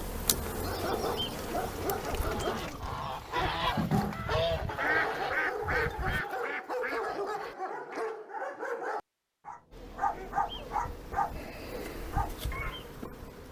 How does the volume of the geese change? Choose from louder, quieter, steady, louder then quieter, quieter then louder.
louder then quieter.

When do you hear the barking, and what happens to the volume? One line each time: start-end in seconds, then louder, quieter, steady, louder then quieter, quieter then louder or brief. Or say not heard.
0.5-12.8 steady.